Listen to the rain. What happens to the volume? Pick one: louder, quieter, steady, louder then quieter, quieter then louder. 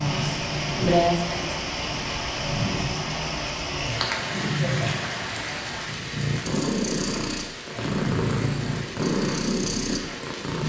quieter.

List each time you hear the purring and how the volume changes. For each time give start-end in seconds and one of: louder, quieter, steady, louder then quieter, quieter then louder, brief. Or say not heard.
0.0-10.6 louder.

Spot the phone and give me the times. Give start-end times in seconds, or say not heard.
not heard.